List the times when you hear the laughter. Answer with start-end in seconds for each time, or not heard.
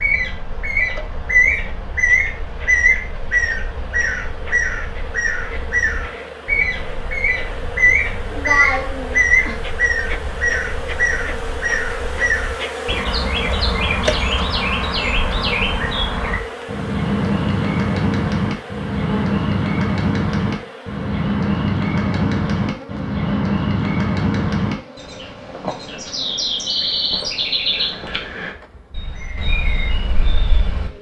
8.3-9.6.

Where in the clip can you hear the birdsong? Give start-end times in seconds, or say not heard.
0.0-30.9.